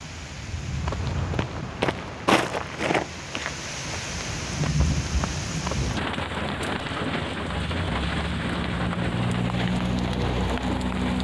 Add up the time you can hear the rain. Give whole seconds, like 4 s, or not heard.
11 s.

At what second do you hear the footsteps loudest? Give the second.
2 s.